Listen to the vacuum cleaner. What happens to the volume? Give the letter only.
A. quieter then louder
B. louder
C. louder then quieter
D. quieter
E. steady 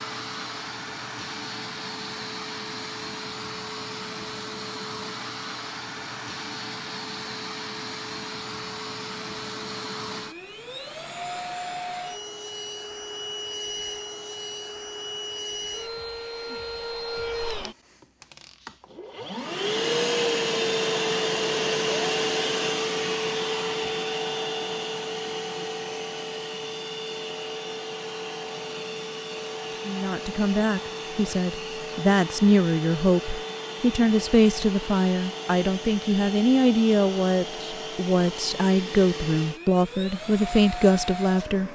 C.